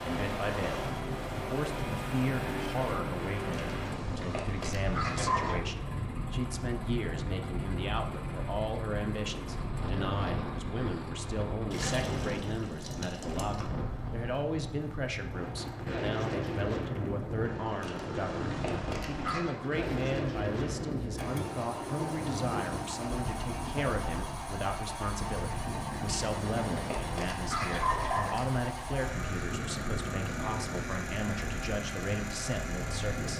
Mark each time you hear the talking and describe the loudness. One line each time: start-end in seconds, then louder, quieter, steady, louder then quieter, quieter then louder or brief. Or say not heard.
0.0-33.3 steady.